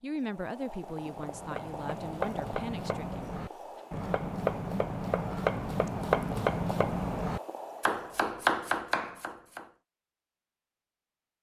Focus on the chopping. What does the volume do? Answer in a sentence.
The volume of the chopping goes up.